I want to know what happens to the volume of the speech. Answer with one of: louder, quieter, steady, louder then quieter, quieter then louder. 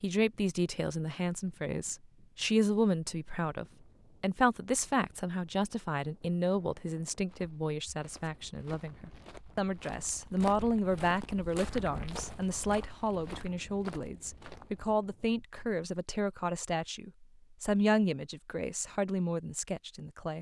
steady.